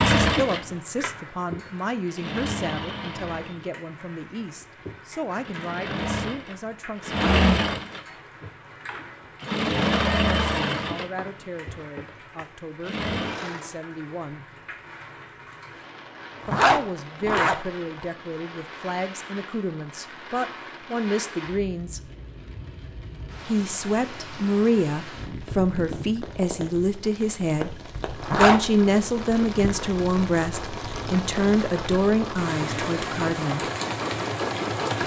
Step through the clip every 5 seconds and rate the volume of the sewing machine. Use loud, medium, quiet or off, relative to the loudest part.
loud, loud, loud, off, off, quiet, medium.